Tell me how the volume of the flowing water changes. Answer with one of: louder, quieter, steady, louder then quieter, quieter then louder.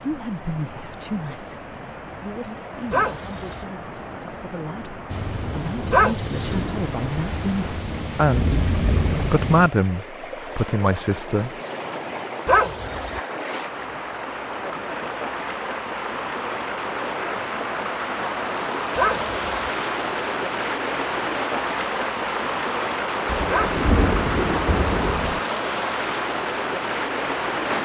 louder.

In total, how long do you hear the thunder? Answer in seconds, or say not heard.
7 s.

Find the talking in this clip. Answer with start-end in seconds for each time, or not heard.
0.0-11.5.